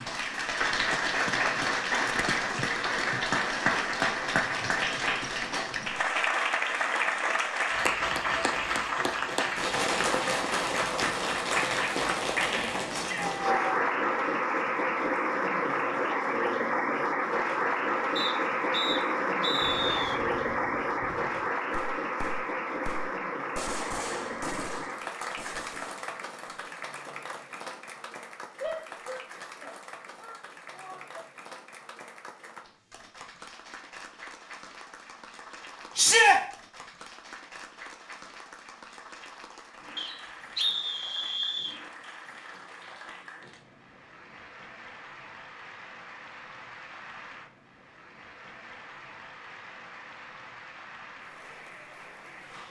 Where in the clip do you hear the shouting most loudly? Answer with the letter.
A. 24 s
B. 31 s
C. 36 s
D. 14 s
C.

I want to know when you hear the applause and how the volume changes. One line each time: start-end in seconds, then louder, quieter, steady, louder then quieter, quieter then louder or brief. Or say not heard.
0.0-52.6 quieter.